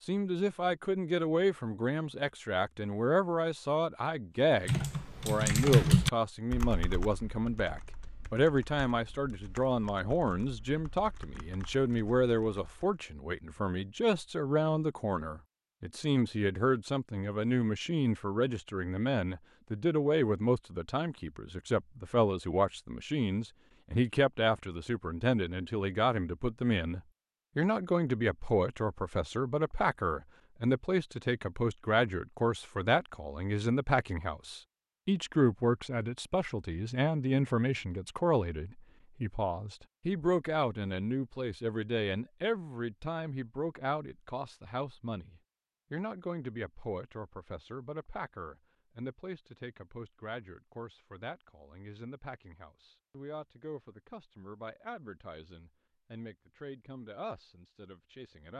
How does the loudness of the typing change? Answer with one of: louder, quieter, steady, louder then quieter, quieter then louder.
quieter.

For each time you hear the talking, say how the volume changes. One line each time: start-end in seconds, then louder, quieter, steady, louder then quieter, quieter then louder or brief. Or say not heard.
0.0-58.5 quieter.